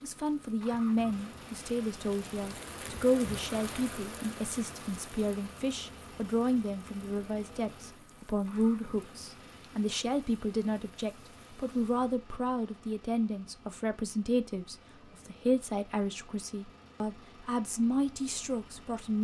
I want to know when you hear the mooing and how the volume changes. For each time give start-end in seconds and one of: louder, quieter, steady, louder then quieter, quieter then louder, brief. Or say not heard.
not heard.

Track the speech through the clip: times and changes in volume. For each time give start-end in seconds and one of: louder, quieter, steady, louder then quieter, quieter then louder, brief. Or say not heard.
0.0-19.1 steady.